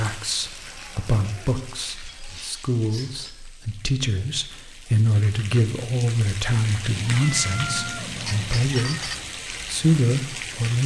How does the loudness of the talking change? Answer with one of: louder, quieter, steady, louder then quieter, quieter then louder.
louder.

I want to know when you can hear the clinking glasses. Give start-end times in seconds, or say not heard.
2.0-3.4, 8.2-9.2.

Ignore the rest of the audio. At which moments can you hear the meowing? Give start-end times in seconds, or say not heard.
0.7-2.4, 6.9-8.7.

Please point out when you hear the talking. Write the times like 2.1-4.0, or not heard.
0.0-10.8.